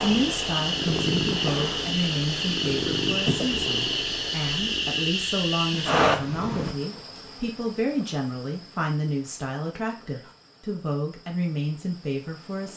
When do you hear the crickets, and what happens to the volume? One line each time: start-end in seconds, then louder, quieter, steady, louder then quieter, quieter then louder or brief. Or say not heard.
0.0-12.7 quieter.